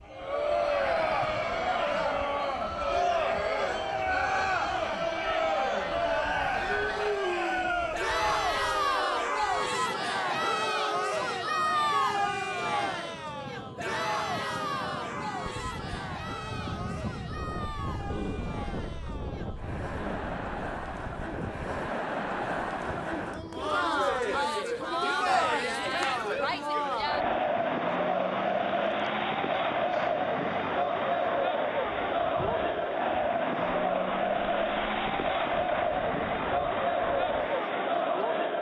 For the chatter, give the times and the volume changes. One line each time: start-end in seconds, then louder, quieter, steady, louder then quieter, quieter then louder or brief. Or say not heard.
0.1-38.5 quieter then louder.